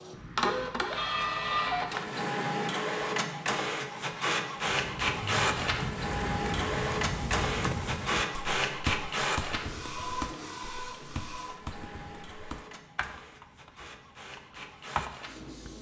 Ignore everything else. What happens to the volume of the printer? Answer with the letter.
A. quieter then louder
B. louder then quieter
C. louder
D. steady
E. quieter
E.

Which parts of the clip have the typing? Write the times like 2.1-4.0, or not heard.
4.5-15.7.